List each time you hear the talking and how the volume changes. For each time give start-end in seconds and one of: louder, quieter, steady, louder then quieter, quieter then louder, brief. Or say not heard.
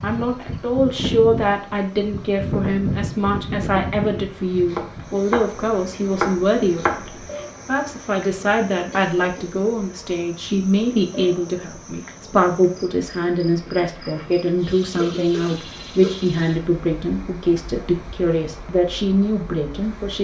0.0-20.1 steady.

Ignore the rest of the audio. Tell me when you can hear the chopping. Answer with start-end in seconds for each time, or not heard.
4.7-7.2.